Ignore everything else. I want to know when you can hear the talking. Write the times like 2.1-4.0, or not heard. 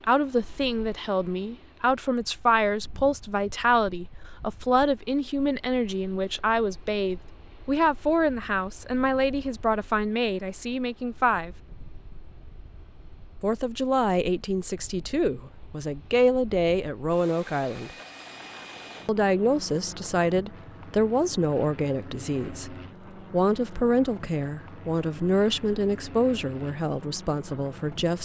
0.0-11.6, 13.4-17.9, 19.1-28.2.